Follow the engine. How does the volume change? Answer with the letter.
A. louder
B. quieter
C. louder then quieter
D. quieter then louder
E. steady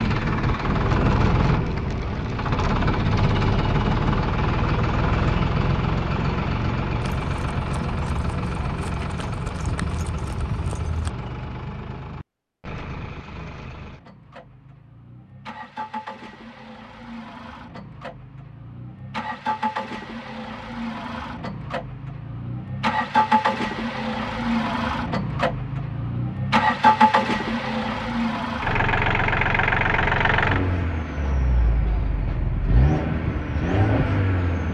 D.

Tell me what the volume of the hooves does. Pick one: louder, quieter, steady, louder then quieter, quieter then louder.
louder.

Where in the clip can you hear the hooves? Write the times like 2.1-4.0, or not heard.
7.0-11.1.